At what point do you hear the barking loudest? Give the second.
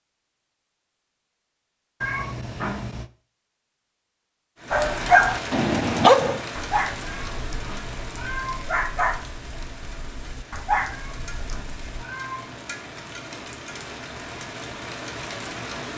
6 s.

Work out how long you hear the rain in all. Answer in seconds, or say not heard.
11 s.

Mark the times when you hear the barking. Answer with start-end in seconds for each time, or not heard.
4.7-12.1.